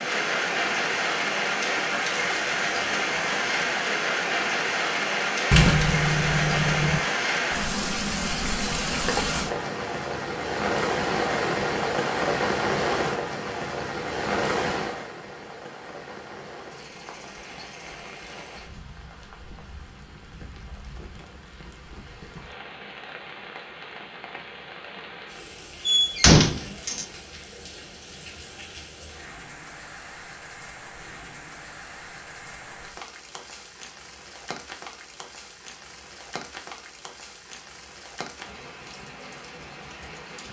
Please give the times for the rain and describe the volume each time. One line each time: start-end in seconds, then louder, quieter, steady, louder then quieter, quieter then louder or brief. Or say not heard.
0.0-40.4 quieter.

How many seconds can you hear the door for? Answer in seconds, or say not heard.
3 s.